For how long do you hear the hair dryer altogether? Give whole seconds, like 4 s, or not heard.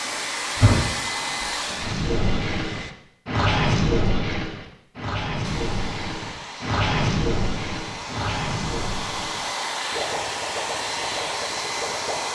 10 s.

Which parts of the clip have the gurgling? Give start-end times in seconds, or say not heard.
1.8-12.3.